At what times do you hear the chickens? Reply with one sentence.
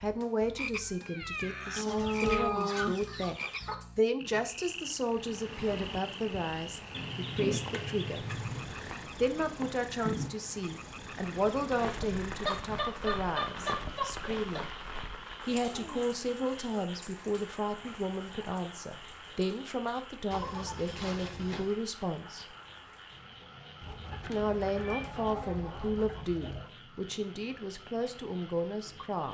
The chickens can be heard from 1.8 to 3.8 s, from 6.9 to 8.8 s, from 12.1 to 14.7 s, from 20.3 to 21.8 s and from 23.8 to 26.7 s.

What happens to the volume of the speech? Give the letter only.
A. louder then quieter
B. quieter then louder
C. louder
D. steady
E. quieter
D.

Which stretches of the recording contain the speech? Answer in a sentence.
You can hear the speech from 0.0 to 3.4 s, from 4.0 to 8.2 s, from 9.2 to 14.7 s, from 15.4 to 22.4 s and from 24.2 to 29.2 s.